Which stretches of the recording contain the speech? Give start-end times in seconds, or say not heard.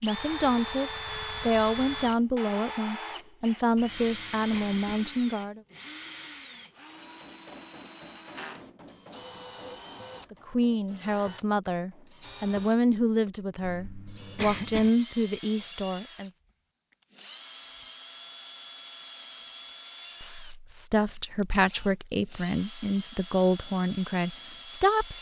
0.0-5.6, 10.3-16.3, 20.2-25.1.